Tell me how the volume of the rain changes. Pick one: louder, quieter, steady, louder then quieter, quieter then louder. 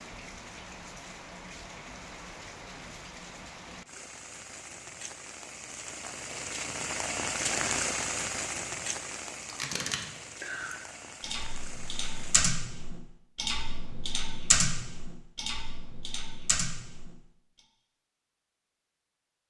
louder then quieter.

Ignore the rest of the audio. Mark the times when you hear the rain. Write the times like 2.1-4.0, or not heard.
0.0-12.6.